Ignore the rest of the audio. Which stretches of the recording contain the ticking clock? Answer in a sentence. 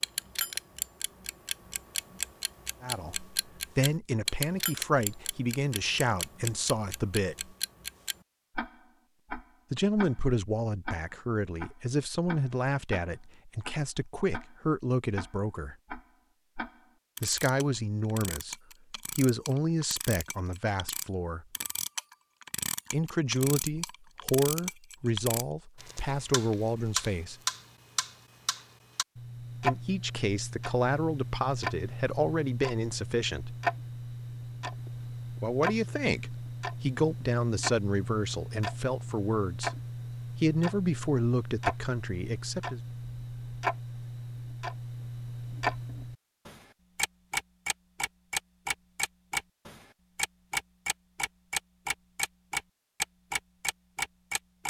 The ticking clock can be heard from 0.0 to 54.6 s.